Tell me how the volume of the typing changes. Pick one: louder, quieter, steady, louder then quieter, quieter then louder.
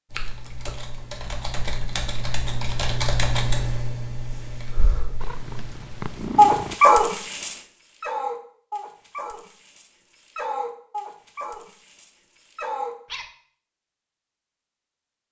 louder then quieter.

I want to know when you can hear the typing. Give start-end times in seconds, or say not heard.
0.1-6.2.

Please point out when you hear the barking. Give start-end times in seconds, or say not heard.
6.3-13.3.